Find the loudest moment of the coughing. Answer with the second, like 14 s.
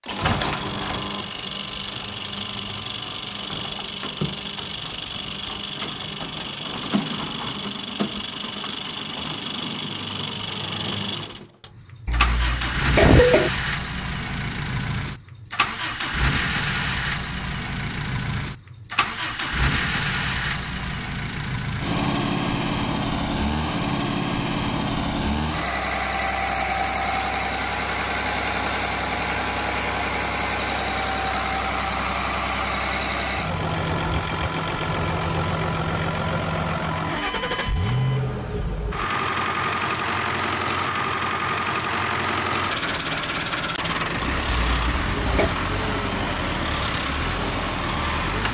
13 s.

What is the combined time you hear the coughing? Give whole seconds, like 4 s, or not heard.
2 s.